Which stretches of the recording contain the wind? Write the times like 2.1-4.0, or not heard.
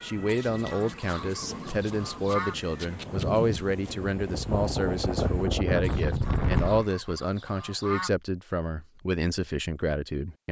0.0-6.8.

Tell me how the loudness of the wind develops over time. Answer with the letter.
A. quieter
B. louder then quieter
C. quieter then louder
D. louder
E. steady
D.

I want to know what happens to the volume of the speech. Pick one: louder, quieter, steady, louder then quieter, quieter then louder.
steady.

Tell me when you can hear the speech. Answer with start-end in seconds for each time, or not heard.
0.0-10.4.